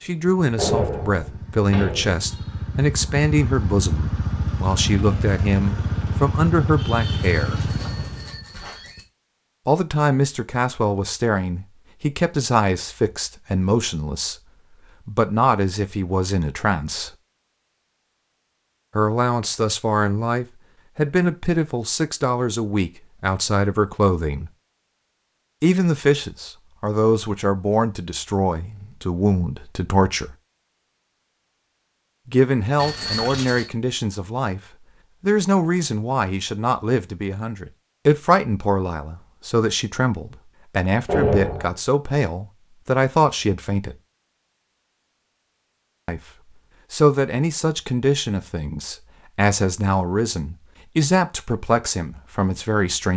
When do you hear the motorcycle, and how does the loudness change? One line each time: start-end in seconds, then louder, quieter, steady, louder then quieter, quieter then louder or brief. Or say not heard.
0.0-8.4 louder.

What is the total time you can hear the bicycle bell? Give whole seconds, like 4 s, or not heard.
3 s.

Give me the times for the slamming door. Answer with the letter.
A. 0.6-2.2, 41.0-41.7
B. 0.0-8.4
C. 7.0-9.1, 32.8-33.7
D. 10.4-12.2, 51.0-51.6
A.